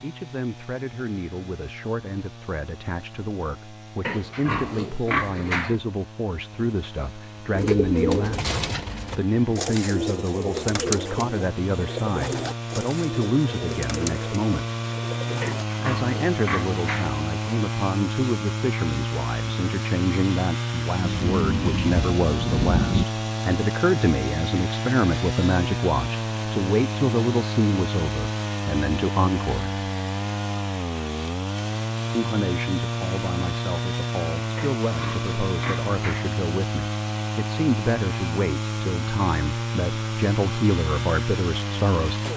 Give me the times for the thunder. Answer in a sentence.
You can hear the thunder from 21.0 to 23.1 s.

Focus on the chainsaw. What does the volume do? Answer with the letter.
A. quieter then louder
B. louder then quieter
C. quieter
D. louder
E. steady
D.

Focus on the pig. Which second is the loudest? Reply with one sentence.
The volume of the pig peaks at 5 seconds.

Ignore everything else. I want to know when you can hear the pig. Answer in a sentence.
You can hear the pig from 4.0 to 5.8 s, from 15.4 to 17.1 s and from 34.5 to 36.3 s.